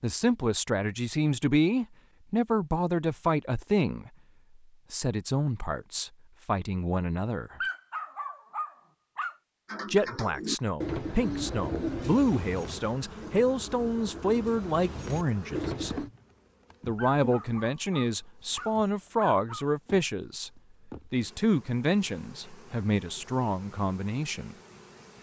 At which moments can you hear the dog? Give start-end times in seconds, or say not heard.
7.6-9.3, 16.9-19.7.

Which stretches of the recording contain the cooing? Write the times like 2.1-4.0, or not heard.
9.7-16.1.